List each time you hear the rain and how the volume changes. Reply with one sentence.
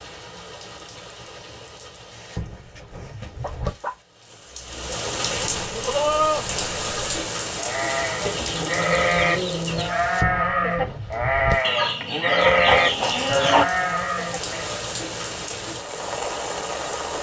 You can hear the rain from 0.0 to 17.1 s, getting louder.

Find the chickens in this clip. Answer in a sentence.
You can hear the chickens from 2.1 to 4.0 s, from 8.2 to 9.9 s and from 11.6 to 13.7 s.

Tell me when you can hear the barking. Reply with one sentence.
The barking can't be heard in this clip.